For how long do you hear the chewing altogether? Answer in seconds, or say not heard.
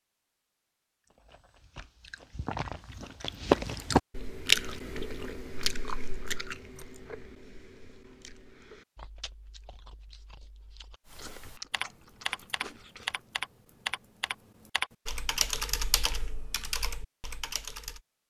12 s.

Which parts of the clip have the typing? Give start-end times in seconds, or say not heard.
11.1-18.0.